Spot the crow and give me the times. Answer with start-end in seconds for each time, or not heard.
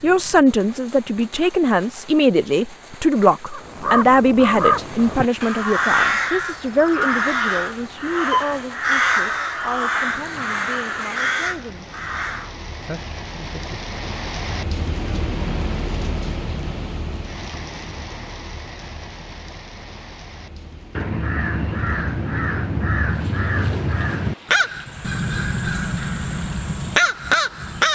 3.5-12.6, 20.9-27.9.